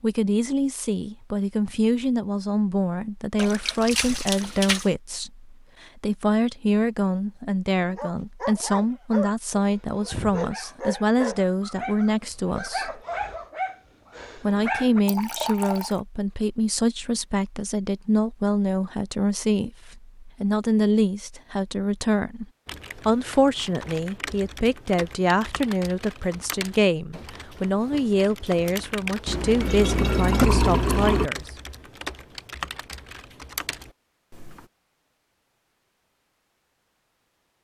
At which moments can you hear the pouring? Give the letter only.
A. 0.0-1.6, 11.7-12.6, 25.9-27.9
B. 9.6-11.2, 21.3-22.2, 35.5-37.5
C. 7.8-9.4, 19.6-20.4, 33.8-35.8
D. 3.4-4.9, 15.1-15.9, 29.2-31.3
D.